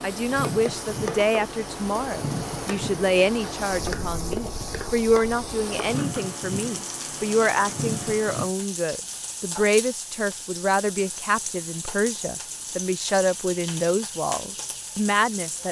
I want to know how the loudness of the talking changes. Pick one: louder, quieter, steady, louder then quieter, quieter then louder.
steady.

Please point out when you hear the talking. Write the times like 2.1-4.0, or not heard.
0.0-15.6.